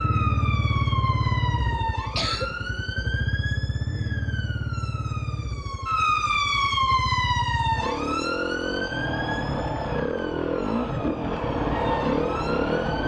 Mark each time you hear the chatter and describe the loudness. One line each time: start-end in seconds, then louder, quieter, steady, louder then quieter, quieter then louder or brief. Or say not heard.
not heard.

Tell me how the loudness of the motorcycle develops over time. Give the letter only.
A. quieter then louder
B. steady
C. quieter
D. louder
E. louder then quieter
A.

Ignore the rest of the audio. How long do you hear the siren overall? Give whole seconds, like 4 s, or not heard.
13 s.